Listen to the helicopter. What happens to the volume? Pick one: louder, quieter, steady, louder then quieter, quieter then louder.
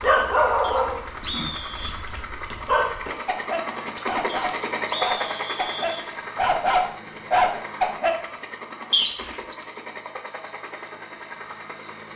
louder then quieter.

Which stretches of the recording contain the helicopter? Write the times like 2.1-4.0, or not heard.
0.0-12.1.